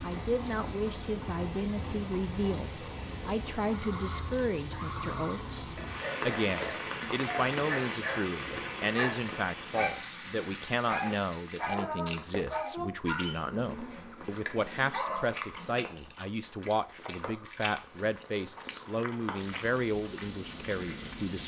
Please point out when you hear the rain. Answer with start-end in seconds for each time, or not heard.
0.0-21.4.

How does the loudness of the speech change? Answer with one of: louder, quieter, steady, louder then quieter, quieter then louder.
steady.